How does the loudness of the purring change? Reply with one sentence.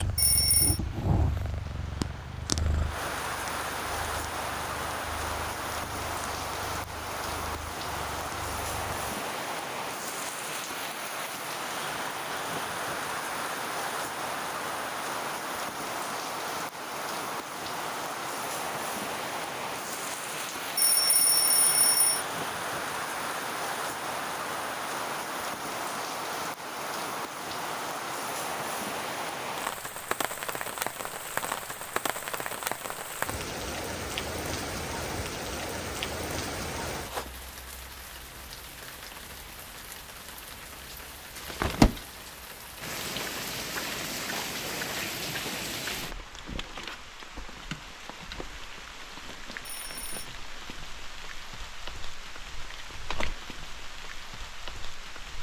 The loudness of the purring goes down.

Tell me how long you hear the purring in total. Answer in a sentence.
The purring can be heard for 9 seconds in total.